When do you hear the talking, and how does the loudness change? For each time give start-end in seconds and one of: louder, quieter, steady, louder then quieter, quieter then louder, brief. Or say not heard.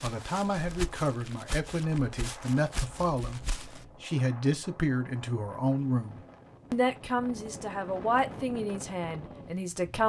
0.0-10.0 steady.